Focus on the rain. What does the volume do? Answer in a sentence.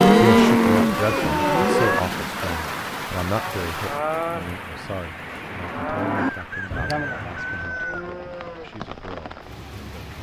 The loudness of the rain goes down.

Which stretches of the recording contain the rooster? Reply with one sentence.
The rooster can be heard from 6.2 to 8.1 s.